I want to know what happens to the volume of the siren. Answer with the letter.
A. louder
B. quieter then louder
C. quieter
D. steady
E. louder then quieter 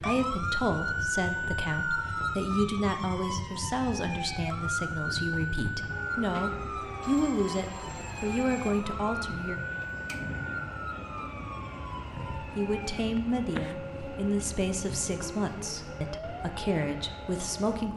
C.